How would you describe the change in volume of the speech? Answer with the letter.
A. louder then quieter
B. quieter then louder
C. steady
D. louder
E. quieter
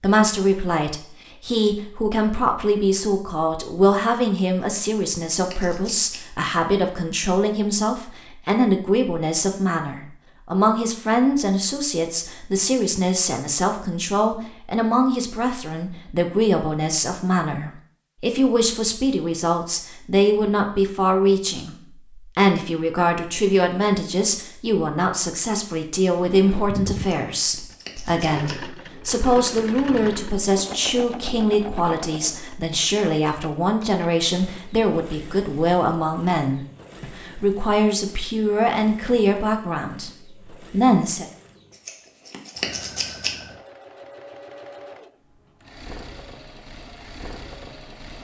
C.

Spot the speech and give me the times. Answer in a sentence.
You can hear the speech from 0.0 to 41.2 s.